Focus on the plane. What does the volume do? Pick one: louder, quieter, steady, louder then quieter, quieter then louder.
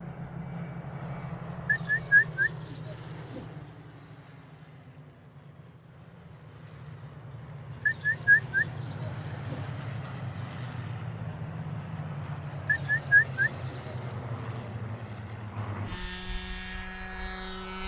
quieter then louder.